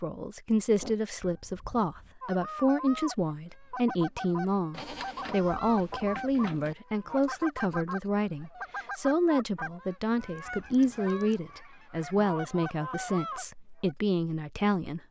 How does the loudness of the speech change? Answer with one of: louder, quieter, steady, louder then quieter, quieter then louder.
steady.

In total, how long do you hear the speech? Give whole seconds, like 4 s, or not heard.
15 s.